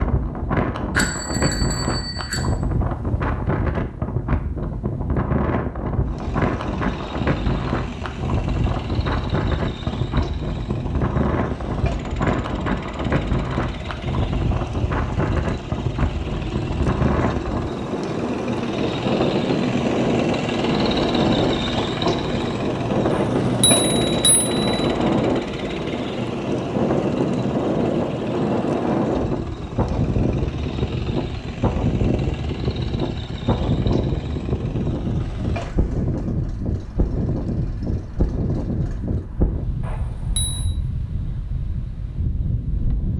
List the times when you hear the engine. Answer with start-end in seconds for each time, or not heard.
6.0-39.3.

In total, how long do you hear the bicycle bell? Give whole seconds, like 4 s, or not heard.
4 s.